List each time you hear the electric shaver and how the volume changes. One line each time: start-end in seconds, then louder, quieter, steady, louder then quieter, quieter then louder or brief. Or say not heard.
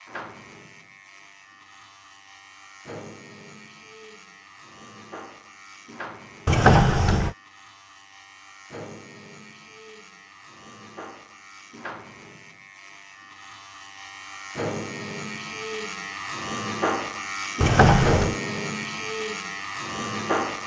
0.0-20.6 louder.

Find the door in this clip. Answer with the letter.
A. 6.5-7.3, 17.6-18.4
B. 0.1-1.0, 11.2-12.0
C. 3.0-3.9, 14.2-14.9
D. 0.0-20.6
A.